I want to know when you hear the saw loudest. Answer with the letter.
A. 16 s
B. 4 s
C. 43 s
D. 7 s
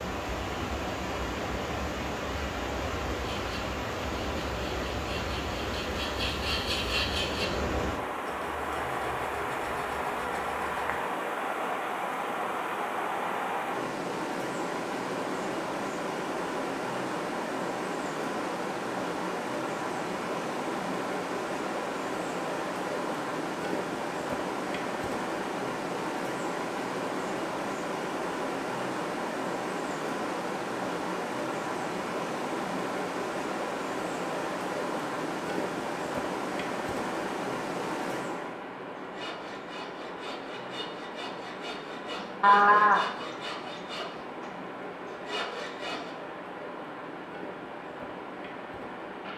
C.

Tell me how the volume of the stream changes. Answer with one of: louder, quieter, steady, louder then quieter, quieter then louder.
quieter.